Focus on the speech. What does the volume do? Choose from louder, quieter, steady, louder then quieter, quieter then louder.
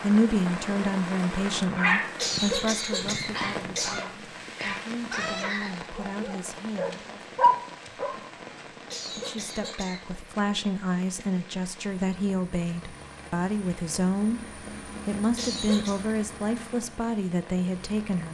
quieter then louder.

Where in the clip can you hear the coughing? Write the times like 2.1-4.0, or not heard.
2.1-4.0, 8.9-10.1, 15.3-16.0.